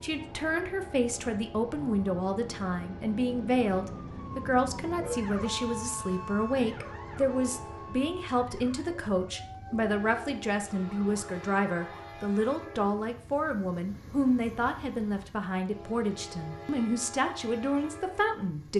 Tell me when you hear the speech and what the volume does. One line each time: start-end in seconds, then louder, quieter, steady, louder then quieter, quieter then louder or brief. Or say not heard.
0.0-18.7 steady.